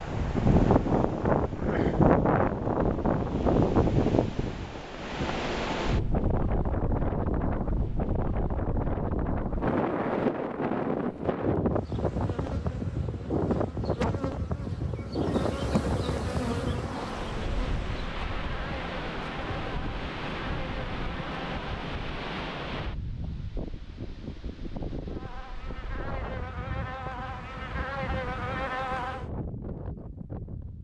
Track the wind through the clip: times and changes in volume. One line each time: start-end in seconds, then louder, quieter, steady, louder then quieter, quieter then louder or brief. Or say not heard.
0.0-30.7 quieter.